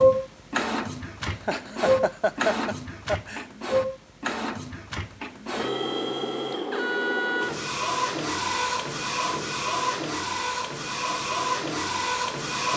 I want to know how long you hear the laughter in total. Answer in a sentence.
You can hear the laughter for 2 seconds altogether.